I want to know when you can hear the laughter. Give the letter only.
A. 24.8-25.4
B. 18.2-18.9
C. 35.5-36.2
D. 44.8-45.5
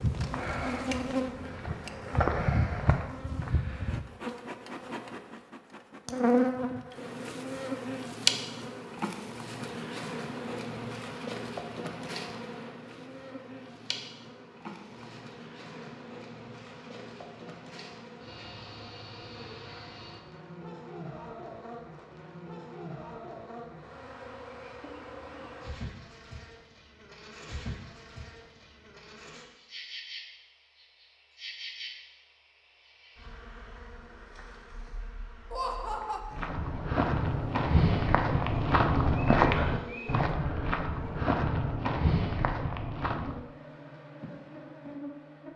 C.